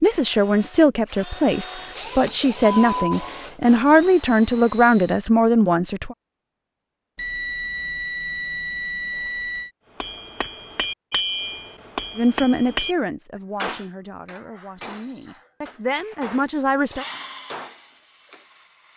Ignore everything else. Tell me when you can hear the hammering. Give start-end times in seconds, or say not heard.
10.0-12.9, 13.6-18.4.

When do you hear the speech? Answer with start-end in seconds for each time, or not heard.
0.0-6.2, 12.2-17.1.